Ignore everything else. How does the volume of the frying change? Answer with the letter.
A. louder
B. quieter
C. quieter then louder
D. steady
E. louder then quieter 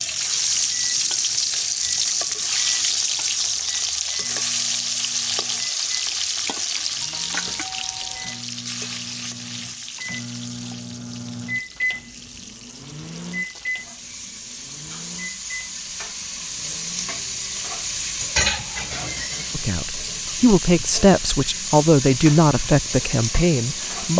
C.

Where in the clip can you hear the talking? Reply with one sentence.
You can hear the talking from 19.5 to 24.1 s.